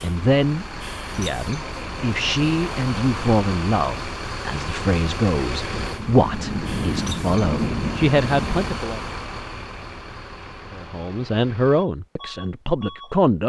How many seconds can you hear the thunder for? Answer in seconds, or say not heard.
3 s.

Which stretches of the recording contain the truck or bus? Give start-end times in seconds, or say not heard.
0.0-13.2.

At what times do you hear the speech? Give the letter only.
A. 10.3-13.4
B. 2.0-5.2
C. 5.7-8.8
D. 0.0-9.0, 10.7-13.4
D.